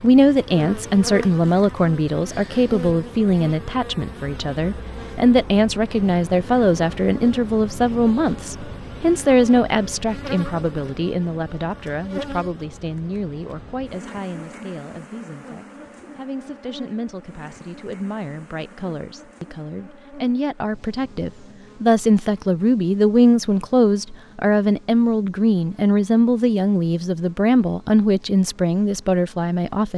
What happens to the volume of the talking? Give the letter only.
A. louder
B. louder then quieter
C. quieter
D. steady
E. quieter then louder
E.